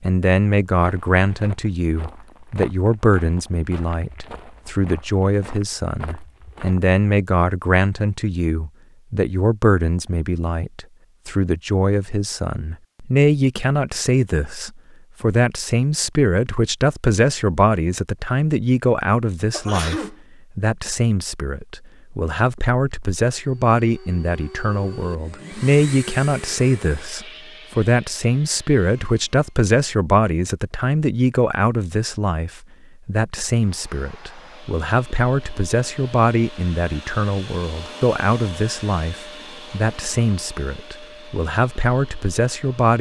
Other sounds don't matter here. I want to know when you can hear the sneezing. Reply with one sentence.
The sneezing can be heard from 19.5 to 20.1 s.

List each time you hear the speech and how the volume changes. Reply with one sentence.
You can hear the speech from 0.0 to 42.9 s, at a steady volume.